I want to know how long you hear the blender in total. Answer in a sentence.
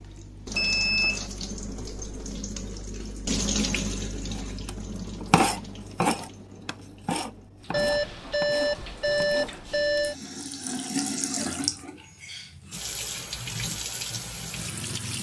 You can't hear the blender here.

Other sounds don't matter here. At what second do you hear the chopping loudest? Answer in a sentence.
The loudest moment of the chopping is at 5 seconds.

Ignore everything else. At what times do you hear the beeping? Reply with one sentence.
You can hear the beeping from 0.5 to 1.3 s and from 7.7 to 10.2 s.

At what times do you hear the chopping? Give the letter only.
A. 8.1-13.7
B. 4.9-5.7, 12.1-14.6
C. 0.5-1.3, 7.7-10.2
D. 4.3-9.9
D.